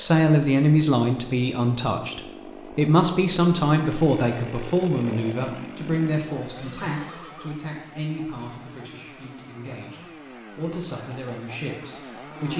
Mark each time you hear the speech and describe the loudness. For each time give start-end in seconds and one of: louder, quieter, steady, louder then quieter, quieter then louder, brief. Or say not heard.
0.0-12.5 quieter.